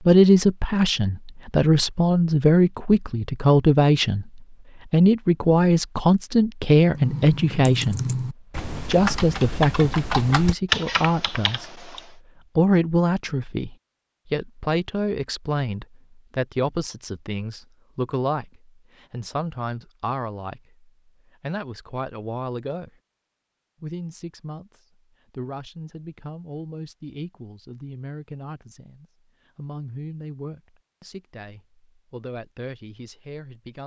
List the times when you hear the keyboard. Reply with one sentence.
The keyboard can be heard from 6.8 to 12.1 s.